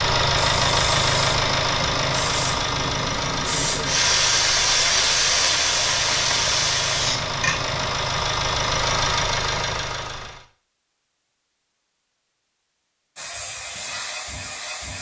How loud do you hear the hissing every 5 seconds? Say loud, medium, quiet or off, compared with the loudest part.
loud, loud, medium.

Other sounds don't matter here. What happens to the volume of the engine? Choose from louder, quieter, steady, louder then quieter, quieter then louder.
quieter then louder.